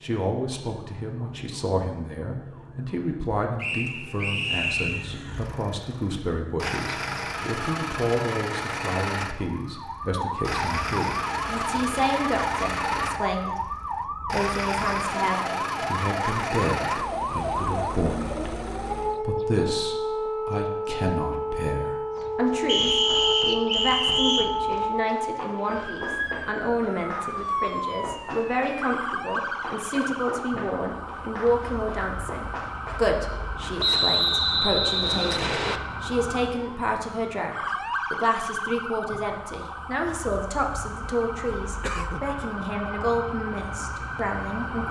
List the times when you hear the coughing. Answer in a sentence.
The coughing can be heard from 41.8 to 42.3 s.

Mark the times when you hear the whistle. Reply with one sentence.
You can hear the whistle from 3.6 to 5.0 s, from 22.6 to 24.5 s and from 33.8 to 35.8 s.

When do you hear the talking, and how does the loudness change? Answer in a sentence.
The talking can be heard from 0.0 to 44.8 s, at a steady volume.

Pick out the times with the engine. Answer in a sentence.
You can hear the engine from 4.3 to 19.2 s.